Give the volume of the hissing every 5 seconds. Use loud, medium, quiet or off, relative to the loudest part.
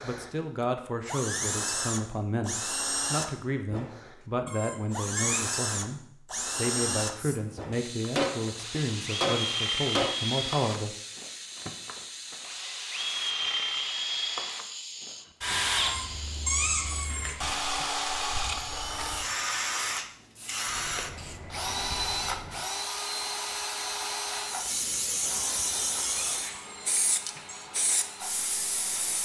off, medium, medium, medium, medium, loud.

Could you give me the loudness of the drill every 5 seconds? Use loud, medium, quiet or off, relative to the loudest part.
loud, loud, loud, loud, loud, quiet.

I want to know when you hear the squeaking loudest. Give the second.
17 s.